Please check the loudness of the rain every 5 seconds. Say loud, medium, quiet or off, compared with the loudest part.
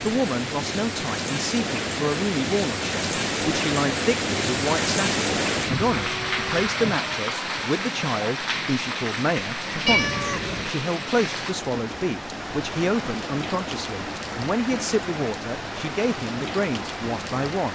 loud, loud, medium, medium.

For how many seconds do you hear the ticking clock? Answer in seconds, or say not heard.
not heard.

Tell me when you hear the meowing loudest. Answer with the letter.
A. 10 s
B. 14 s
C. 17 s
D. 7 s
A.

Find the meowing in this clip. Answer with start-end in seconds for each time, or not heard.
6.0-6.7, 9.8-10.8.